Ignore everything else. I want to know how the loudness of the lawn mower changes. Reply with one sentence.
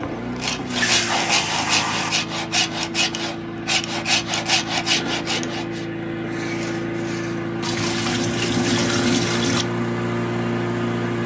The volume of the lawn mower goes up.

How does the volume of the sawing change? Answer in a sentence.
The volume of the sawing goes down.